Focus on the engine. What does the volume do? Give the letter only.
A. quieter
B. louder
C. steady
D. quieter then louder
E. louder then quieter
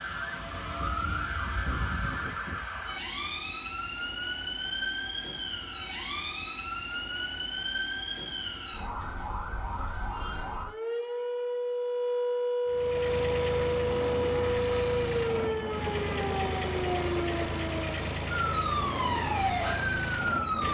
C.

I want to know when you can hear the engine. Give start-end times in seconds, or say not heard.
12.7-20.6.